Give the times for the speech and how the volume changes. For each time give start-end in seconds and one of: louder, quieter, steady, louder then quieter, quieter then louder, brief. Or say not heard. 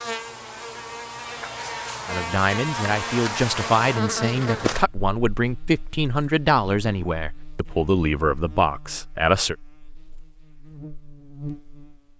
2.0-9.6 steady.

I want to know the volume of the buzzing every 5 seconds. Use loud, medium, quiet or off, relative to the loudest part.
loud, quiet, medium.